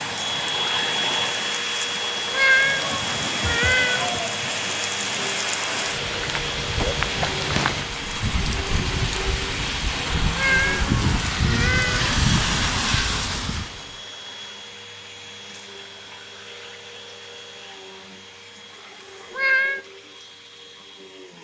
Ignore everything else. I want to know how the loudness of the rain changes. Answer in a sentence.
The volume of the rain goes up.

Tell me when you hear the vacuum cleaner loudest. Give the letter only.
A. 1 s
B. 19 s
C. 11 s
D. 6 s
A.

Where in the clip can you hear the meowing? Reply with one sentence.
The meowing can be heard from 2.3 to 4.2 s, from 10.3 to 12.2 s and from 19.3 to 19.9 s.